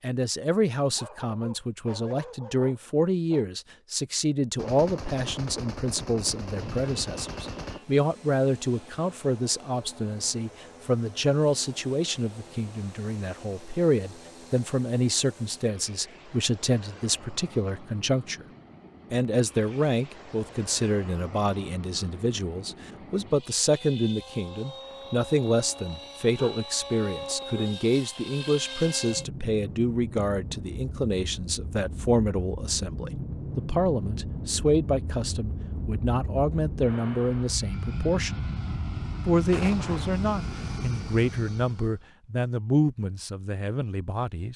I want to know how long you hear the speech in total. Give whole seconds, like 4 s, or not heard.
43 s.